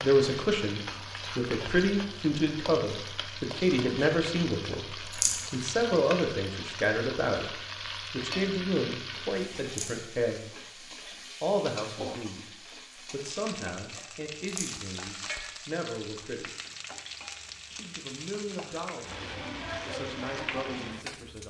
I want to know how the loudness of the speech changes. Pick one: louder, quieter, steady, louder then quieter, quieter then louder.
quieter.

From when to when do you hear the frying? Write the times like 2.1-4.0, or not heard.
0.0-21.4.